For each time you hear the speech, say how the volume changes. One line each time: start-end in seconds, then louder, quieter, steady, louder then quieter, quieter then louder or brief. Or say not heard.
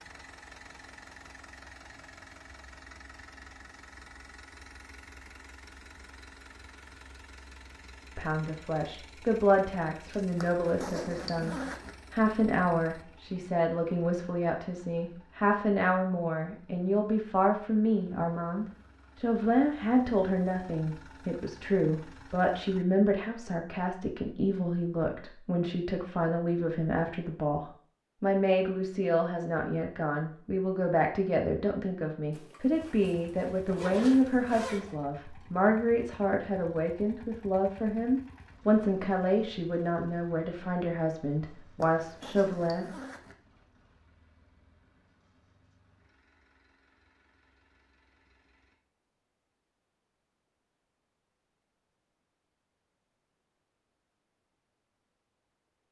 8.2-42.9 steady.